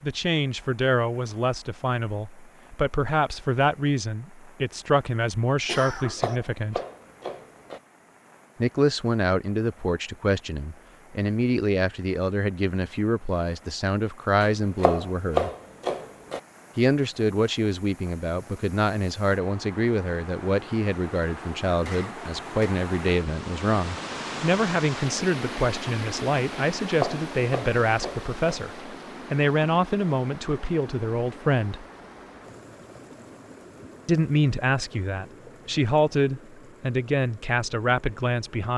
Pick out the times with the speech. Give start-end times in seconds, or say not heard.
0.0-6.8, 8.6-15.5, 16.8-31.9, 34.0-38.7.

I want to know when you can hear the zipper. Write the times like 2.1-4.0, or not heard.
not heard.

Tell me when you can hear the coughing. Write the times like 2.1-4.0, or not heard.
5.7-6.3, 21.9-22.8.